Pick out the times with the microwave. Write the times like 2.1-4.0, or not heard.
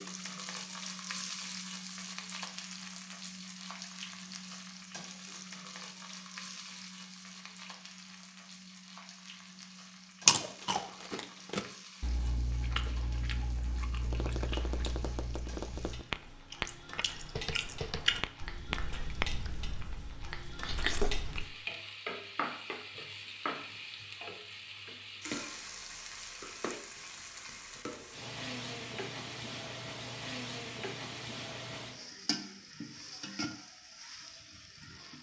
not heard.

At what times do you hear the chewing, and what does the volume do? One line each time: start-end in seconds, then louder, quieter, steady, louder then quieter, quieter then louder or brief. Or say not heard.
10.2-21.4 quieter then louder.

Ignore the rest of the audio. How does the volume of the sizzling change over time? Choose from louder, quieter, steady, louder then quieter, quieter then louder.
quieter then louder.